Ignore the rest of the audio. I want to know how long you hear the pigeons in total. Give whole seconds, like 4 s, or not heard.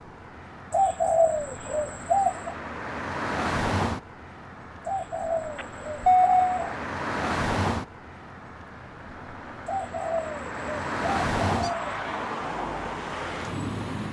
6 s.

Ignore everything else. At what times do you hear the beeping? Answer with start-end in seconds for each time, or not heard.
5.5-6.6.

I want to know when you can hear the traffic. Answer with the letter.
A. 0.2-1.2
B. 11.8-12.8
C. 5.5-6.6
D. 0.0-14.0
D.